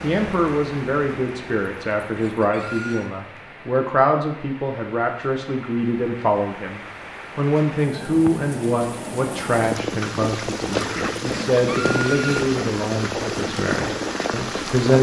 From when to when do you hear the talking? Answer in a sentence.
The talking can be heard from 0.0 to 14.9 s.